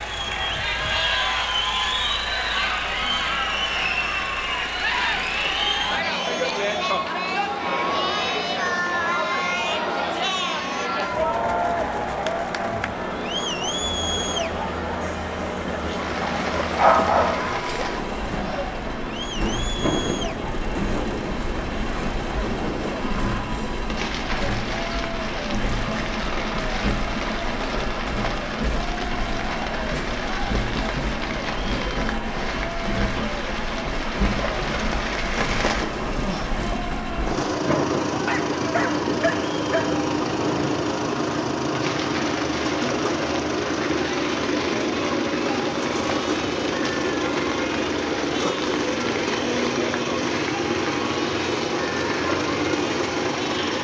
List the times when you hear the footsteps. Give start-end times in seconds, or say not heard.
not heard.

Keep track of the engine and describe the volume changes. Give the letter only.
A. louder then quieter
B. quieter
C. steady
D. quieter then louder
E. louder
E.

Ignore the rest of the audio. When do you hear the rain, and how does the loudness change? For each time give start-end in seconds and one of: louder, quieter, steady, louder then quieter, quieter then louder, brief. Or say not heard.
15.8-53.7 steady.